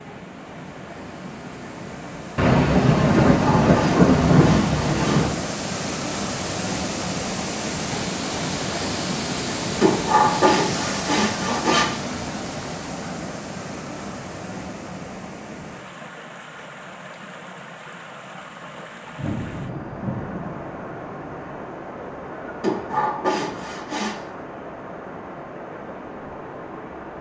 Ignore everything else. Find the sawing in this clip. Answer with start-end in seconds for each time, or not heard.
3.4-5.2, 9.8-11.9, 22.6-24.1.